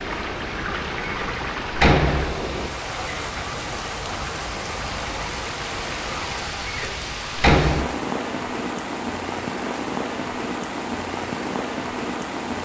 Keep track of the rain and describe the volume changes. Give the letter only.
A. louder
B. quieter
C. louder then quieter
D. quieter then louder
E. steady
E.